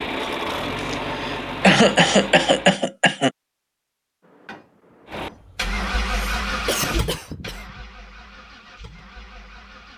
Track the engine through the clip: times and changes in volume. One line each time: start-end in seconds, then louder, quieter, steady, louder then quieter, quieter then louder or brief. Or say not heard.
0.0-2.8 brief
5.0-9.9 quieter.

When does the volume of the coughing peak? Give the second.
2 s.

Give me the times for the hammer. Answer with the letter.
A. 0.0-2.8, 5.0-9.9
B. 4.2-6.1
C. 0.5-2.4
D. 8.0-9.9
B.